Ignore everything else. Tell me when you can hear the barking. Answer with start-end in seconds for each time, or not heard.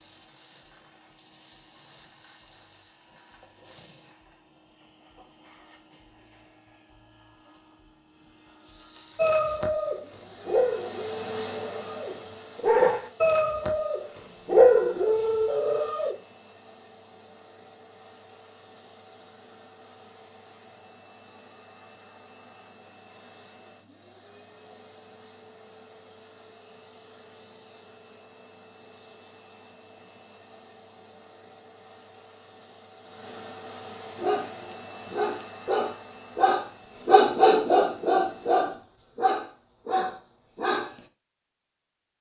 9.2-16.1, 34.1-41.0.